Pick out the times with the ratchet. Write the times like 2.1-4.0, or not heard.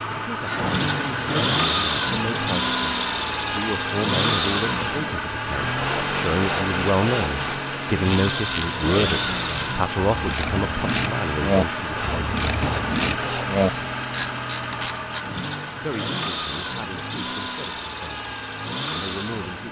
7.5-15.3.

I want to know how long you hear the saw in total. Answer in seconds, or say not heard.
4 s.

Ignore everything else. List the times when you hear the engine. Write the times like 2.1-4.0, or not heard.
0.0-19.6.